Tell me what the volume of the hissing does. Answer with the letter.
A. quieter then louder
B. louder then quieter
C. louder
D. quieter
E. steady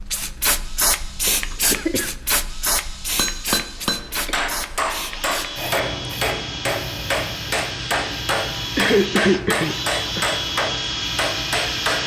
D.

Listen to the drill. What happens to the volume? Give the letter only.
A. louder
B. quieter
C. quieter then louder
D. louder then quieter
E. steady
A.